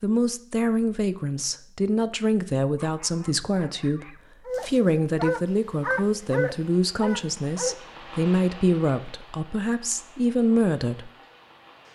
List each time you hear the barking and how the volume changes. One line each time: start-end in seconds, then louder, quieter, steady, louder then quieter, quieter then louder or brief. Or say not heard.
2.6-7.8 louder then quieter.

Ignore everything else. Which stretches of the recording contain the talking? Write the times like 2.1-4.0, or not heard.
0.0-11.1.